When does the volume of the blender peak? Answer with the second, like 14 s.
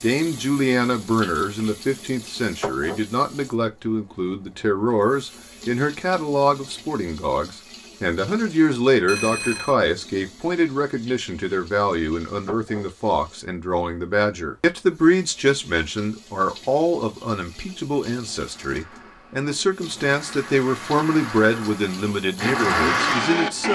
23 s.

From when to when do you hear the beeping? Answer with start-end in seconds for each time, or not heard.
9.1-9.8.